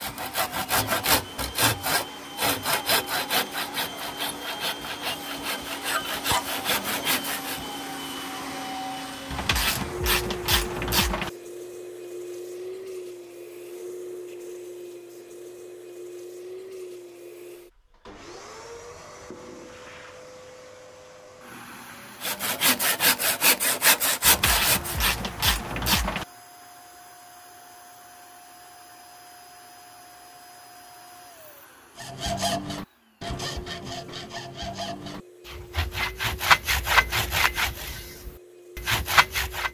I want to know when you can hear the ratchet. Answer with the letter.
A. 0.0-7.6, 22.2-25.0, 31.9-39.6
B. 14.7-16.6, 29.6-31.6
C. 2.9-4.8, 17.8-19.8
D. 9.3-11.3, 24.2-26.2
D.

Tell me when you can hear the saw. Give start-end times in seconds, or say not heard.
0.0-7.6, 22.2-25.0, 31.9-39.6.